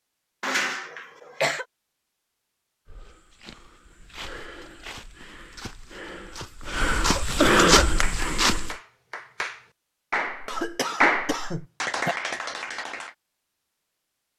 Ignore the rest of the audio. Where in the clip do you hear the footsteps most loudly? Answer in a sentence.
The loudest moment of the footsteps is at 8 seconds.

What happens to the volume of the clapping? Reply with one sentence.
The volume of the clapping goes up, then down.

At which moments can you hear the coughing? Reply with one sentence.
You can hear the coughing from 0.4 to 1.6 s, from 6.7 to 7.9 s and from 10.4 to 12.2 s.